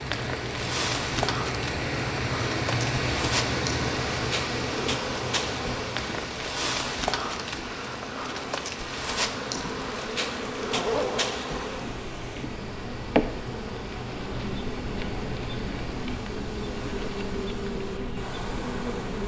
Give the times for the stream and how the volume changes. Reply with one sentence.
The stream can be heard from 0.0 to 19.2 s, getting quieter.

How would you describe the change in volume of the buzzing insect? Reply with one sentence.
The volume of the buzzing insect stays about the same.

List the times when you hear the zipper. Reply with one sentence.
The zipper can be heard from 10.7 to 11.3 s.